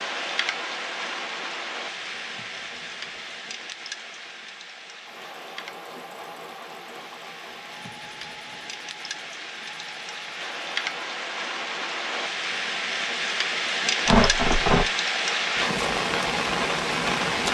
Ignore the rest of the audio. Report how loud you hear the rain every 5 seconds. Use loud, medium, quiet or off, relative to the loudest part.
medium, quiet, loud, loud.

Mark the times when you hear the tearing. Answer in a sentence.
You can hear the tearing from 2.2 to 3.5 s, from 7.6 to 8.7 s and from 14.1 to 14.9 s.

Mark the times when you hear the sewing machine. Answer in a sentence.
You can hear the sewing machine from 5.0 to 11.2 s.